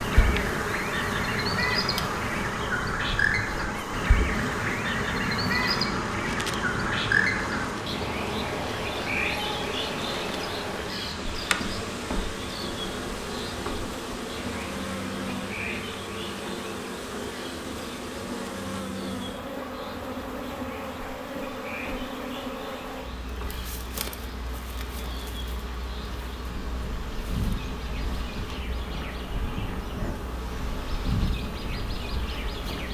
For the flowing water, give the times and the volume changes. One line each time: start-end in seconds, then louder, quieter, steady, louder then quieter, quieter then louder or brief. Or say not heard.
0.0-32.8 quieter.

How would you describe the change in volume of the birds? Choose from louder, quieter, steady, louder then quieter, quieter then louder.
quieter then louder.